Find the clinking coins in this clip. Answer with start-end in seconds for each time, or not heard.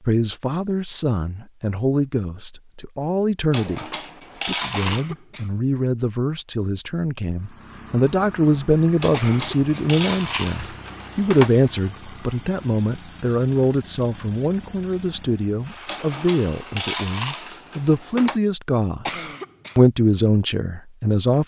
3.5-5.0, 9.0-11.5, 15.8-18.4.